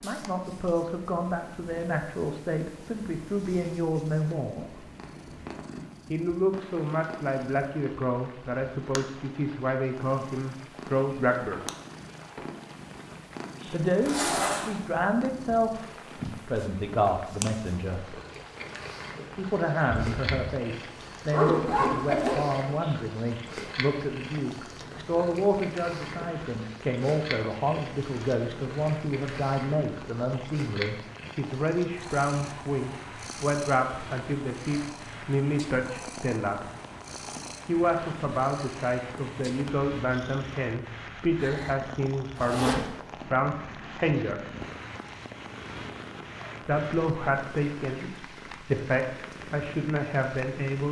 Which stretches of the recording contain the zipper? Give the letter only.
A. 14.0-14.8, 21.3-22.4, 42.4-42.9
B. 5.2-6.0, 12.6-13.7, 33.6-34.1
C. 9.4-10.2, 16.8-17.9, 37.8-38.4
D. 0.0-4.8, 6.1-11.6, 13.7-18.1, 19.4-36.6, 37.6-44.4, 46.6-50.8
A.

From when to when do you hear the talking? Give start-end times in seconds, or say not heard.
0.0-4.8, 6.1-11.6, 13.7-18.1, 19.4-36.6, 37.6-44.4, 46.6-50.8.